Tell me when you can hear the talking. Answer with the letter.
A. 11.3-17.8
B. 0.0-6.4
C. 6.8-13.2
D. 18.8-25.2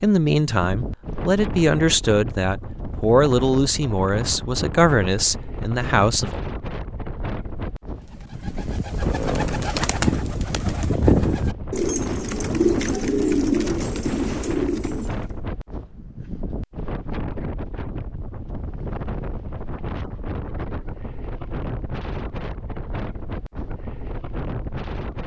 B.